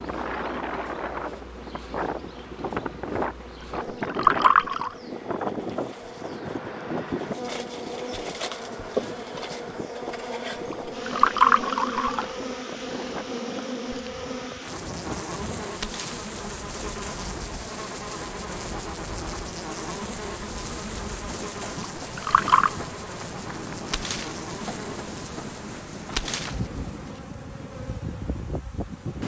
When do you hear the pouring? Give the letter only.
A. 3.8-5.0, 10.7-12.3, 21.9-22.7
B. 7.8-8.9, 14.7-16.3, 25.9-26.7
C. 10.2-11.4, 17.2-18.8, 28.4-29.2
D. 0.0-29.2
A.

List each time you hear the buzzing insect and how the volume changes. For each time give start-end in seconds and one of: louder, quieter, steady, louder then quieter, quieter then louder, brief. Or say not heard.
0.0-29.2 louder.